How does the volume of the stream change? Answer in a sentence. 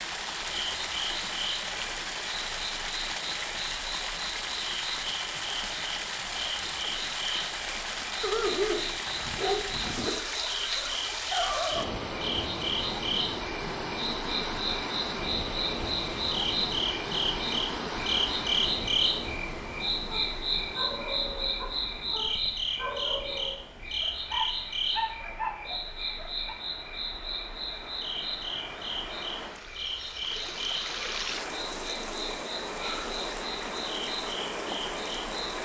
The loudness of the stream goes down, then up.